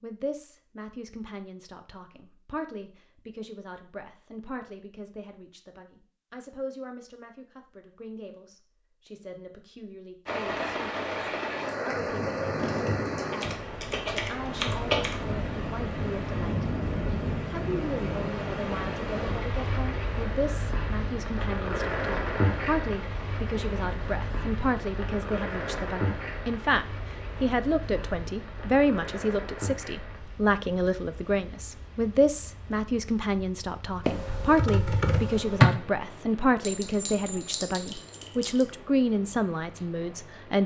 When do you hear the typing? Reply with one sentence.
The typing can be heard from 12.7 to 15.2 s and from 34.0 to 35.7 s.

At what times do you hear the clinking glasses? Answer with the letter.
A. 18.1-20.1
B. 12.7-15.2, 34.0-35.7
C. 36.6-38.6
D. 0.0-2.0
C.